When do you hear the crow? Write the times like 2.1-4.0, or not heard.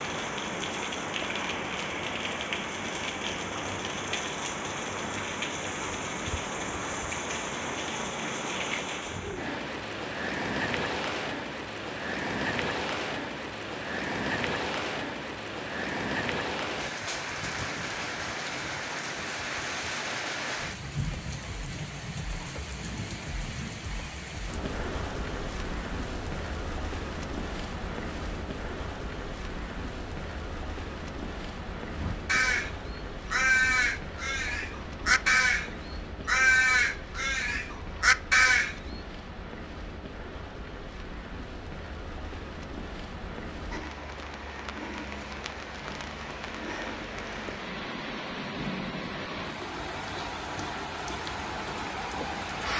31.9-39.0.